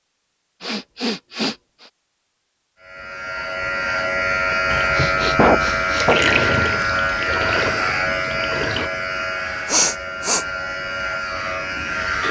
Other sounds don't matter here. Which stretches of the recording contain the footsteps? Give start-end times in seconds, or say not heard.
not heard.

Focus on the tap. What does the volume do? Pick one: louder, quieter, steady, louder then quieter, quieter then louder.
louder then quieter.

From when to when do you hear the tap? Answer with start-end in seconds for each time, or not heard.
4.7-8.9.